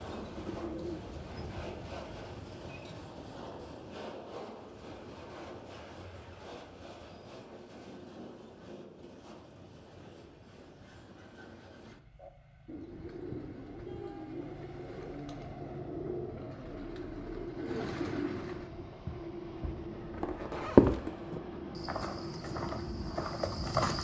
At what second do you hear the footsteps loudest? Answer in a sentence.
The loudest moment of the footsteps is at 21 seconds.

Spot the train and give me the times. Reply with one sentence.
The train can be heard from 0.0 to 23.9 s.